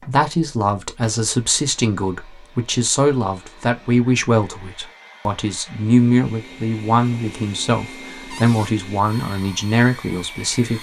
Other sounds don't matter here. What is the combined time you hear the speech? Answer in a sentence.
The speech can be heard for 11 seconds in total.